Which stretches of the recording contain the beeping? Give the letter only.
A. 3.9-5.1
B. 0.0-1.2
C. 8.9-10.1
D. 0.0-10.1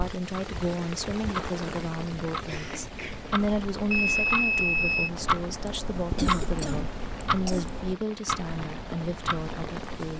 A.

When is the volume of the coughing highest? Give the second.
7 s.